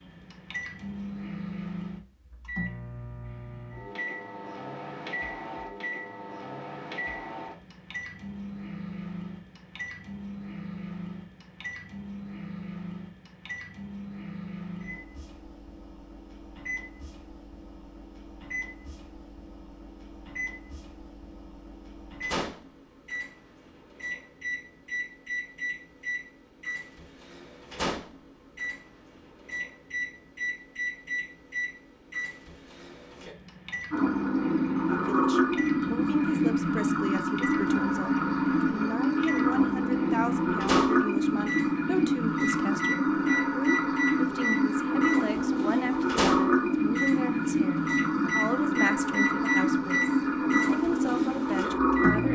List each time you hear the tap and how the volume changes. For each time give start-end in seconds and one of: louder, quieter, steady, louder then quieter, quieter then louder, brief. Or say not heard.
33.9-52.3 steady.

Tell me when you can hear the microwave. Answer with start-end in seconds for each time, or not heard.
0.0-52.3.